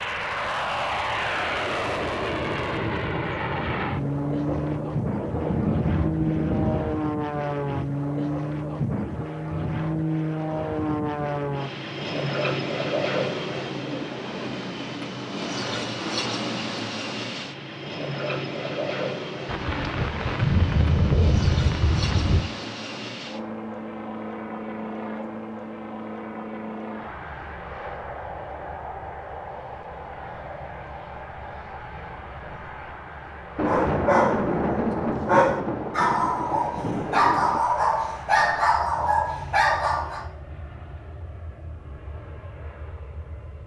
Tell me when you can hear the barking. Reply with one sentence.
The barking can be heard from 33.6 to 40.2 s.